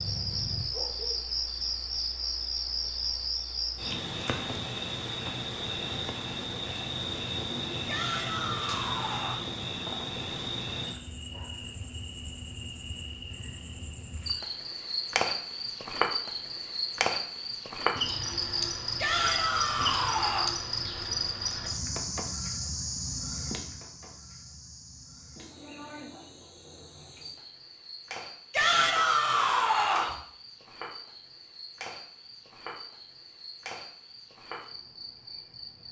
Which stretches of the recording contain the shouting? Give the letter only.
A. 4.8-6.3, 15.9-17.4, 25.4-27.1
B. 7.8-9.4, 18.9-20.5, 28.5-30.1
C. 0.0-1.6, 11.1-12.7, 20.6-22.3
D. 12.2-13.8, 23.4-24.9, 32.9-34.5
B.